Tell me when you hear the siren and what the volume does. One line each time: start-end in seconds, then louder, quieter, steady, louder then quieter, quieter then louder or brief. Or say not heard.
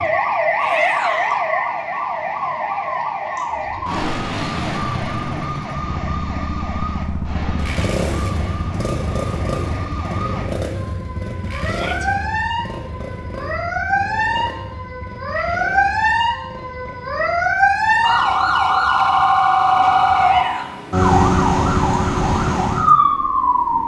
0.0-23.8 quieter then louder.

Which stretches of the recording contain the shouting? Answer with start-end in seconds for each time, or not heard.
0.6-1.4, 11.7-12.1, 20.1-20.8.